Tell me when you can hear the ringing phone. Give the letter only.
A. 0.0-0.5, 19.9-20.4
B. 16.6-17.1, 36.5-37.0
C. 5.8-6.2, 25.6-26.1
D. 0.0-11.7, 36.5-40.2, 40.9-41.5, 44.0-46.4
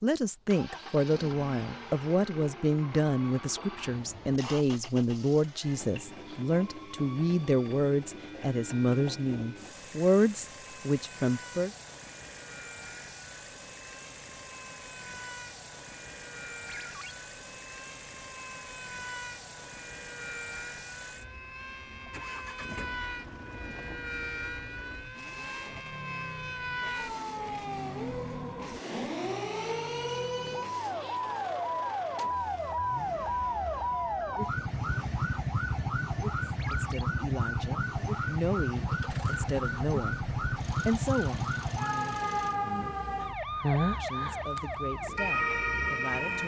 B.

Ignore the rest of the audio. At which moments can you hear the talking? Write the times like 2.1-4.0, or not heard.
0.0-11.7, 36.5-40.2, 40.9-41.5, 44.0-46.4.